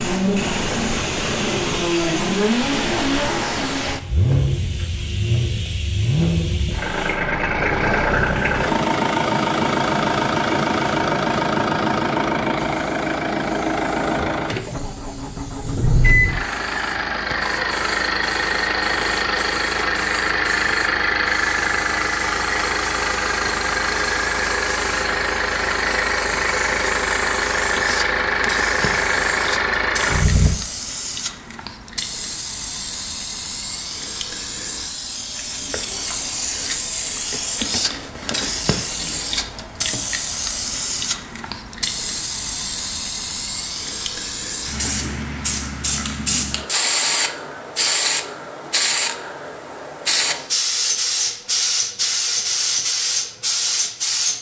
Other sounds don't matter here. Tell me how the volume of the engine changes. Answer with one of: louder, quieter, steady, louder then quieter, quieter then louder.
steady.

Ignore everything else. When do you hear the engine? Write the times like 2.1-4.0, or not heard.
0.0-30.6.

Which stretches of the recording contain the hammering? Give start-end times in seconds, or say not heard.
not heard.